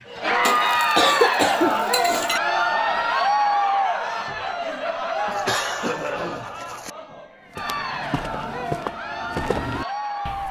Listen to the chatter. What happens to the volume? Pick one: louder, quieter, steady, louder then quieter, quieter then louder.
quieter.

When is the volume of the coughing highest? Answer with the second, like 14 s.
1 s.